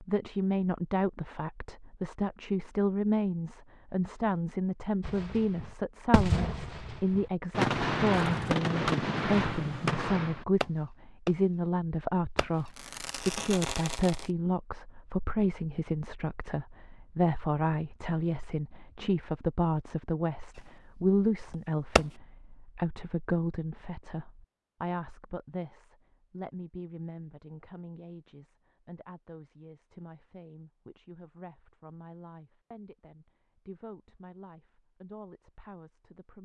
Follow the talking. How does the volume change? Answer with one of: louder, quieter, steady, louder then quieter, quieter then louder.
quieter.